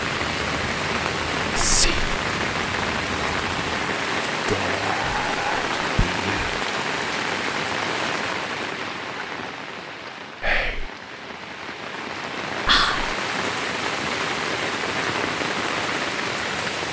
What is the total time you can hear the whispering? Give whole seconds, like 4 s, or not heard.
4 s.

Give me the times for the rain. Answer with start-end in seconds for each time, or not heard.
0.0-16.8.